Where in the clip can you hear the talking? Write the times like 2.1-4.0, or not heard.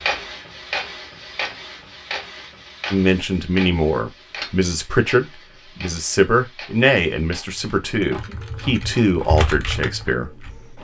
2.9-10.5.